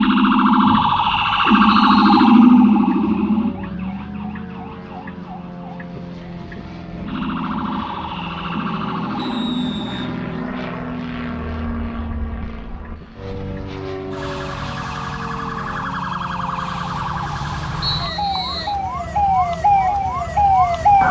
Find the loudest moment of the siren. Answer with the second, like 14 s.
2 s.